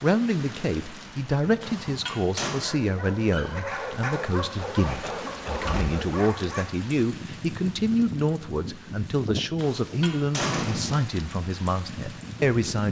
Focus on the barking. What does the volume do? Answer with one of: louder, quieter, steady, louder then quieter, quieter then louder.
louder.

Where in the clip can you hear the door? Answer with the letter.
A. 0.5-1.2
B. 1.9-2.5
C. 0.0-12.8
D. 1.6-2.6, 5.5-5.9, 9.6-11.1
D.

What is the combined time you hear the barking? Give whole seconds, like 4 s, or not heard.
5 s.